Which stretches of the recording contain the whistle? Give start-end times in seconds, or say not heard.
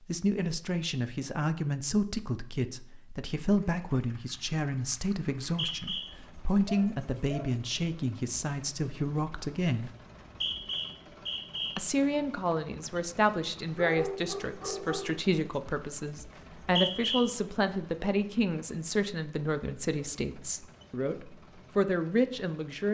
5.4-6.0, 10.1-11.8, 16.4-17.2.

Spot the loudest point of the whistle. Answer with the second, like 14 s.
17 s.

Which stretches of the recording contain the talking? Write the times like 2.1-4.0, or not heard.
0.1-9.9, 11.8-22.9.